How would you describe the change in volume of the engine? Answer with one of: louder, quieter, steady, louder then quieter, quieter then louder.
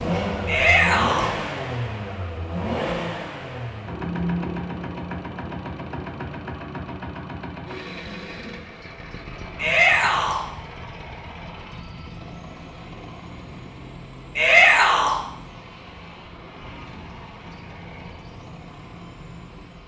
quieter.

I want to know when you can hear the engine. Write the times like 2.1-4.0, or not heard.
0.0-19.8.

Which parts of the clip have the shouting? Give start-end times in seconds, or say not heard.
0.5-1.3, 9.6-10.4, 14.3-15.2.